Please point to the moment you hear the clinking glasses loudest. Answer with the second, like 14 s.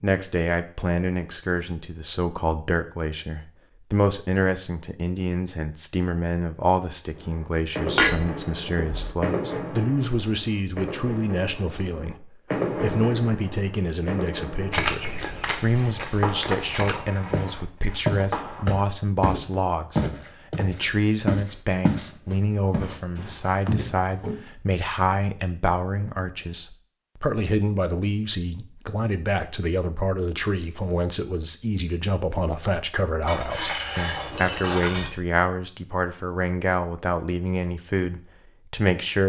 8 s.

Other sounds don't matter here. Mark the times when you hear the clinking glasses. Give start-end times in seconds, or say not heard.
8.0-9.2, 33.2-35.1.